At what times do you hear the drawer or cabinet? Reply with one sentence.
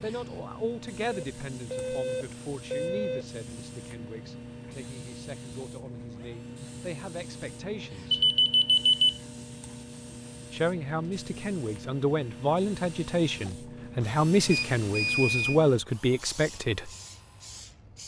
You can't hear the drawer or cabinet here.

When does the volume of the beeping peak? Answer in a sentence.
The loudest moment of the beeping is at 9 seconds.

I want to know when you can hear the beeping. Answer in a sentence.
You can hear the beeping from 1.1 to 3.2 s, from 8.1 to 9.2 s and from 14.4 to 15.6 s.